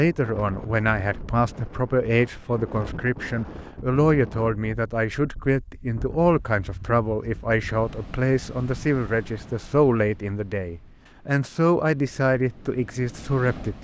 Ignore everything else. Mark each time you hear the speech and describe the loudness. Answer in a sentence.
You can hear the speech from 0.0 to 13.7 s, at a steady volume.